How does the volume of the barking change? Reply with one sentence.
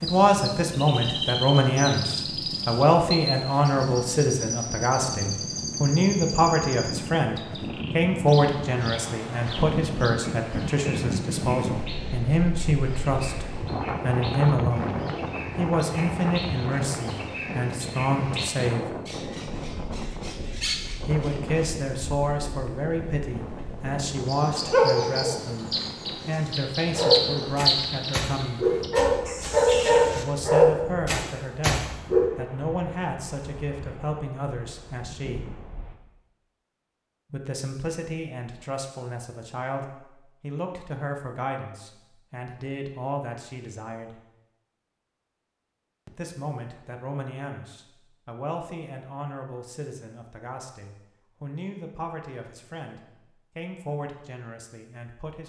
The volume of the barking goes up.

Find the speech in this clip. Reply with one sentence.
The speech can be heard from 0.0 to 14.9 s, from 15.6 to 18.9 s, from 21.1 to 28.7 s, from 30.1 to 35.5 s, from 37.3 to 44.2 s and from 46.0 to 55.4 s.